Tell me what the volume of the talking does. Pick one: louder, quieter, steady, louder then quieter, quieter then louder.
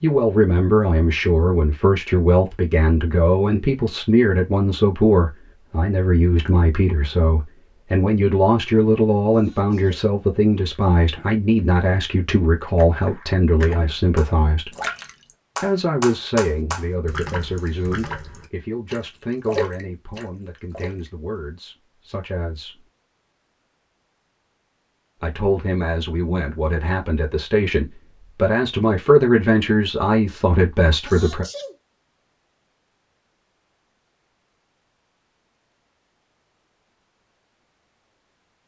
quieter then louder.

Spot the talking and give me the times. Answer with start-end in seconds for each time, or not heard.
0.0-14.8, 15.6-22.9, 25.2-31.4.